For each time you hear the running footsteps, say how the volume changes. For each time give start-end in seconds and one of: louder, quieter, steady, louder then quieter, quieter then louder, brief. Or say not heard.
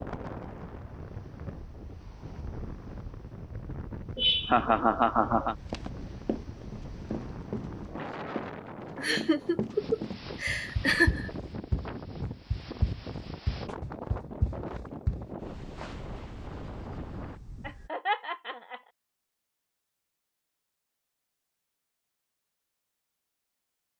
5.7-16.0 steady.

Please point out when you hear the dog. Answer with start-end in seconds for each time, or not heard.
not heard.